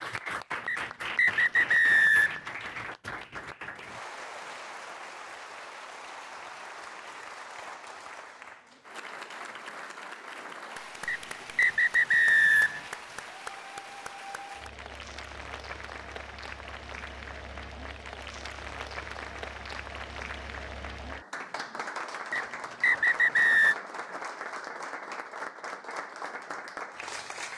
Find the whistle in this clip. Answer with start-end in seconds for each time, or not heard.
0.7-2.4, 11.1-12.8, 22.3-23.8.